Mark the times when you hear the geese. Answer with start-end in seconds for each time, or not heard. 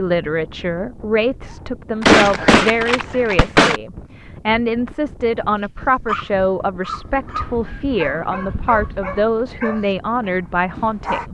2.0-3.8, 7.3-9.2.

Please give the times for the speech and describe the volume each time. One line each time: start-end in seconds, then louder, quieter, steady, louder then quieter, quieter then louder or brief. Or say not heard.
0.0-11.2 steady.